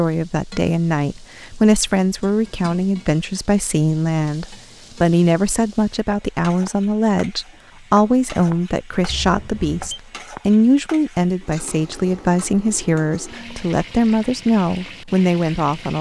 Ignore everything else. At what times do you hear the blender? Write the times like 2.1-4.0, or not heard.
not heard.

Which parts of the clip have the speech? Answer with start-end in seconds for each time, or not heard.
0.0-15.9.